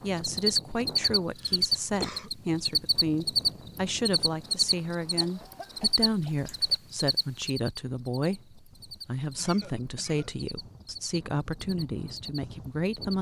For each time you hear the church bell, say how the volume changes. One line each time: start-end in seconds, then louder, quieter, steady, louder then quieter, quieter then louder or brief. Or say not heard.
not heard.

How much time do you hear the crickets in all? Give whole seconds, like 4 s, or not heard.
13 s.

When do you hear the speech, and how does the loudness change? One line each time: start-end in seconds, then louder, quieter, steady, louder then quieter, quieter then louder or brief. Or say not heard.
0.0-13.1 steady.